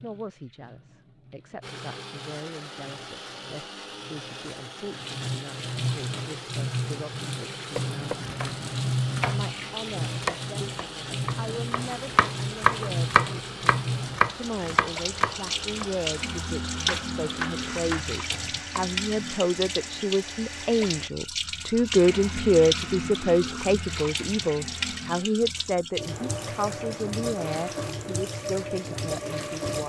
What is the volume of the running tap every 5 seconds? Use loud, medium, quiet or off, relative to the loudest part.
quiet, loud, loud, loud, loud, loud.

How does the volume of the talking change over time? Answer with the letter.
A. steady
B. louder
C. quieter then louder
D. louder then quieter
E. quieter
D.